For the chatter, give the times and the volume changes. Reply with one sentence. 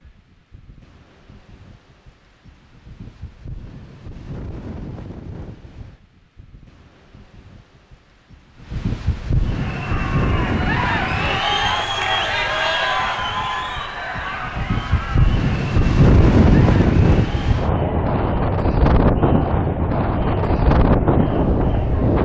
You can hear the chatter from 9.4 to 22.1 s, getting quieter.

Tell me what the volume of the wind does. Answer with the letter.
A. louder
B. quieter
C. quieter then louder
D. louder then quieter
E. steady
A.